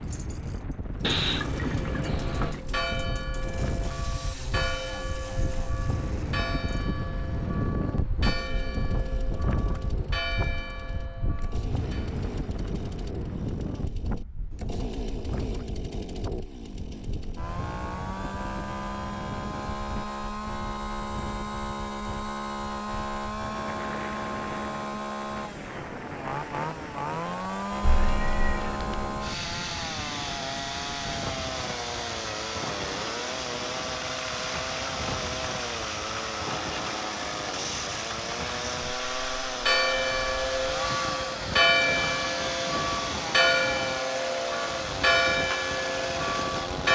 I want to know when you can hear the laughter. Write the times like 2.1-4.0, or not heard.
not heard.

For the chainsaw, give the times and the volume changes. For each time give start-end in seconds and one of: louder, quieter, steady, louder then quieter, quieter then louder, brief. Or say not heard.
0.0-46.8 louder.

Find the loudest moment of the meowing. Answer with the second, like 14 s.
1 s.